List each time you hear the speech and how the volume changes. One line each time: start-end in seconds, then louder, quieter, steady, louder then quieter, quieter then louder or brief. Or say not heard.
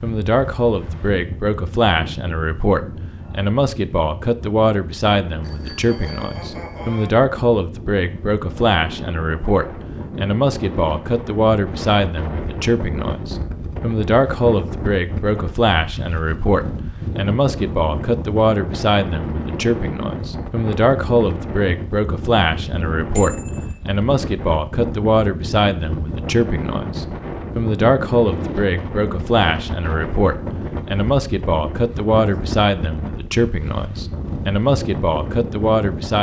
0.0-36.1 steady.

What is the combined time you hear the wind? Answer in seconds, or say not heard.
36 s.